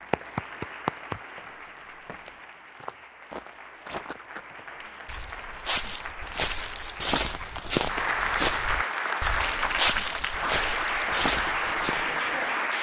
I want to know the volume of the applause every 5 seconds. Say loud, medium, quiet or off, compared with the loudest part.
medium, loud, loud.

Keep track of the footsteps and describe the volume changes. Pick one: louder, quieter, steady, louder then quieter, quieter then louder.
louder.